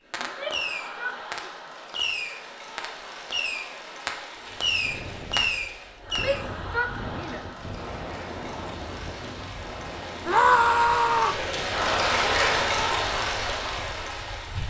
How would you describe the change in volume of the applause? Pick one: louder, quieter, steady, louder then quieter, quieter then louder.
louder.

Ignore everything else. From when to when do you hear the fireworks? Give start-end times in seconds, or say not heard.
0.1-6.4.